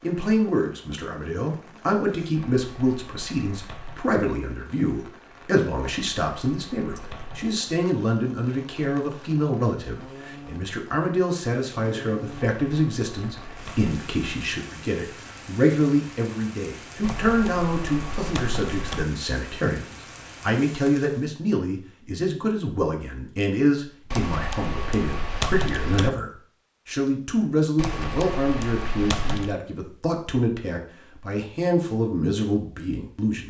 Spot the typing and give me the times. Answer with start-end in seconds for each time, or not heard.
2.4-4.0, 5.8-7.6, 12.4-14.3, 17.0-19.1, 24.1-26.1, 27.8-29.6.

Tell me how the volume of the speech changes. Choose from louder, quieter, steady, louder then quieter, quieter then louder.
steady.